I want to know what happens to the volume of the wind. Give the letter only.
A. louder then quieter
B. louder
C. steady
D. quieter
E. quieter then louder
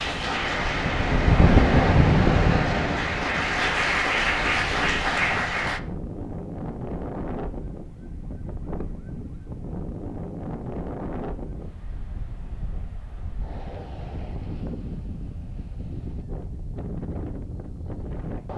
D.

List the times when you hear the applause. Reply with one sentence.
You can hear the applause from 0.0 to 5.8 s.